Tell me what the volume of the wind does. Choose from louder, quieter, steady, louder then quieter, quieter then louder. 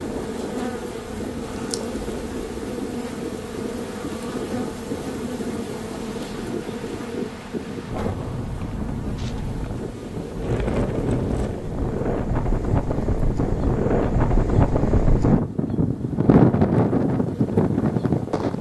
louder.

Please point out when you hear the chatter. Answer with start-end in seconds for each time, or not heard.
not heard.